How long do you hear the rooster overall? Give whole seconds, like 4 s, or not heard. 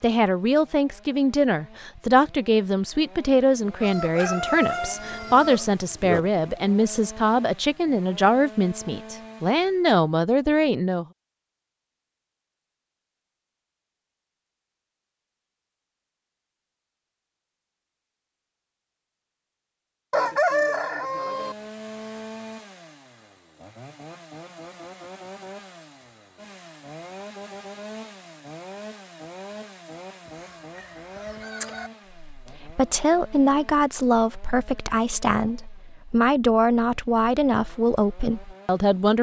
5 s.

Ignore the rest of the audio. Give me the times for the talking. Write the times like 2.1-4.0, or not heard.
0.0-11.1, 32.3-39.1.